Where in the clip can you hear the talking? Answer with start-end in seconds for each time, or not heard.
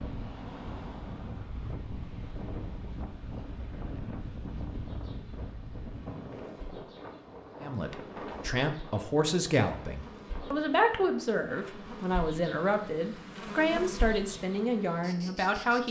7.6-15.8.